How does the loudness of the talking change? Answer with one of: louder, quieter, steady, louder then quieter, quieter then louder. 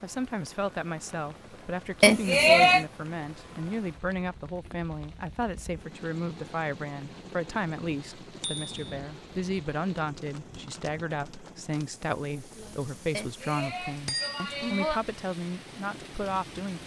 steady.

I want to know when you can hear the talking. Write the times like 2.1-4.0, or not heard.
0.0-16.8.